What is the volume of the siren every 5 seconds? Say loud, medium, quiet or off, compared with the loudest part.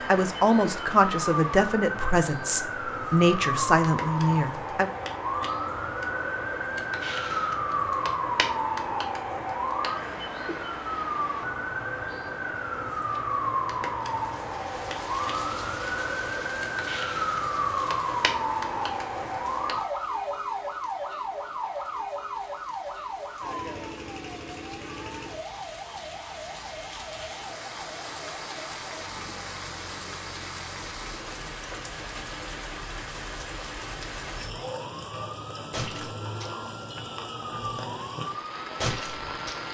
loud, loud, loud, loud, medium, quiet, quiet, medium.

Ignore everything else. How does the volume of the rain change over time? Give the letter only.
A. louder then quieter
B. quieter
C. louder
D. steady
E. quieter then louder
E.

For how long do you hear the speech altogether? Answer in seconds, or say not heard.
5 s.